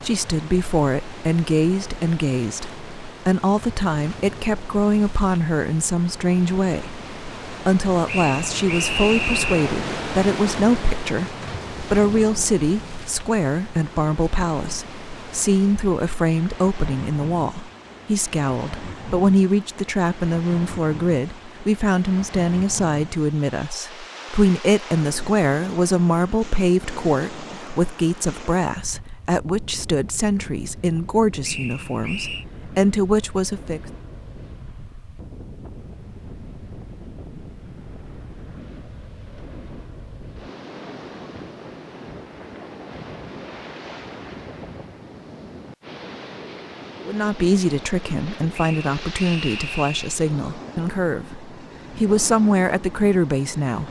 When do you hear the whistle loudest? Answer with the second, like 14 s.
9 s.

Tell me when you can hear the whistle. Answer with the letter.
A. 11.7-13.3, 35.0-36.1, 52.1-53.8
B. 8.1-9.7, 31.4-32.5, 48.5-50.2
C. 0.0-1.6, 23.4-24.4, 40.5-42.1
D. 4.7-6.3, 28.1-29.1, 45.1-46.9
B.